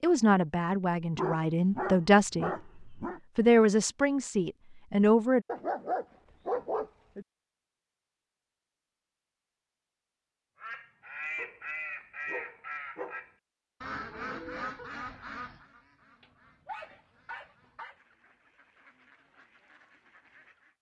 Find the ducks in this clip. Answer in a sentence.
You can hear the ducks from 10.6 to 20.7 s.